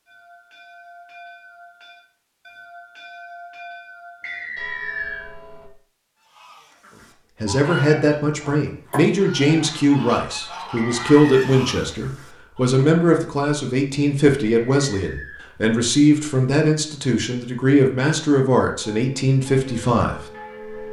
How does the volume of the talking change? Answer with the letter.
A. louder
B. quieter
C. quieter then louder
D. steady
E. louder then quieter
D.